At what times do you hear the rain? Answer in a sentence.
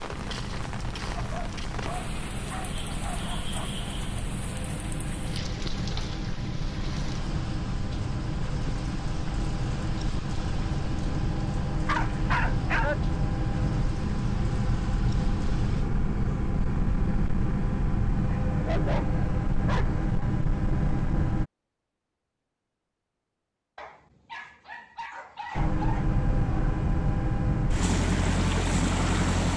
The rain can be heard from 0.0 to 15.9 s.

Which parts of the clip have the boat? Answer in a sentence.
The boat can be heard from 0.0 to 21.4 s and from 25.6 to 29.5 s.